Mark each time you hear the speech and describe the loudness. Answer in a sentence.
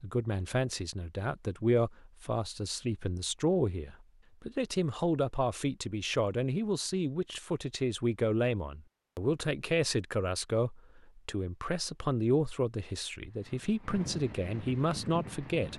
You can hear the speech from 0.0 to 15.7 s, at a steady volume.